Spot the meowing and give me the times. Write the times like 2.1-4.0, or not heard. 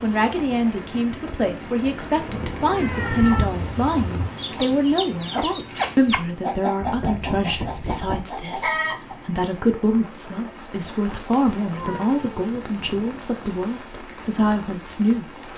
2.2-3.5, 6.8-8.3, 11.8-13.4.